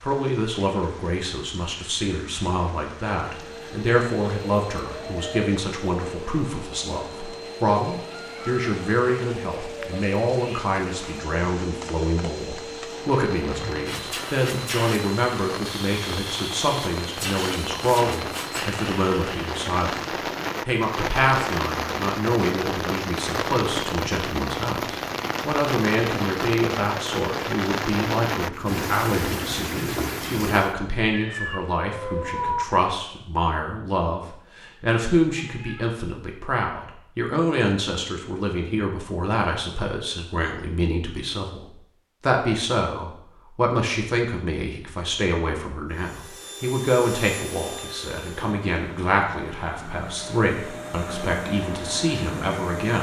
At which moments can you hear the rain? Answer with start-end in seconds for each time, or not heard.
0.0-30.8.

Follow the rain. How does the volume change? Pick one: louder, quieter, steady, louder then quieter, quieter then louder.
louder.